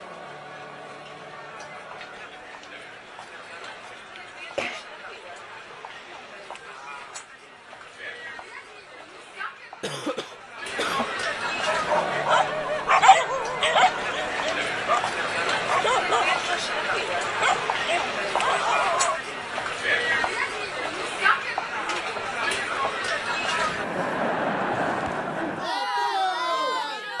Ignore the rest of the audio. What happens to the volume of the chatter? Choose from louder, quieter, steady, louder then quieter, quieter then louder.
louder.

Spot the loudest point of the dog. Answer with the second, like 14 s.
13 s.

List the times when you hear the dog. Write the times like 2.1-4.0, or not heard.
11.7-19.2.